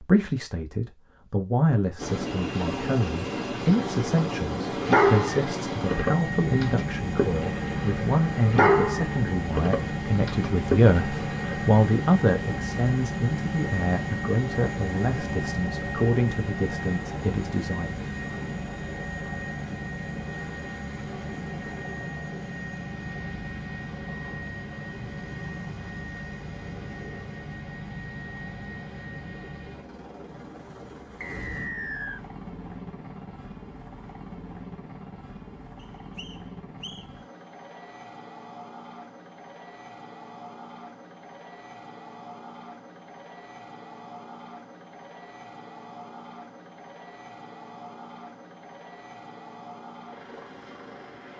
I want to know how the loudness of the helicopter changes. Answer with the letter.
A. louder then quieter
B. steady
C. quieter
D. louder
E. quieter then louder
C.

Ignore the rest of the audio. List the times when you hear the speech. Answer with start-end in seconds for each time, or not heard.
0.0-18.1.